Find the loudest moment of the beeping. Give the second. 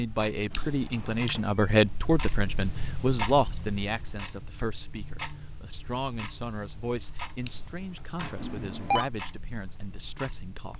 9 s.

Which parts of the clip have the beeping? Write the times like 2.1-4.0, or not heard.
1.2-1.7, 8.4-9.1.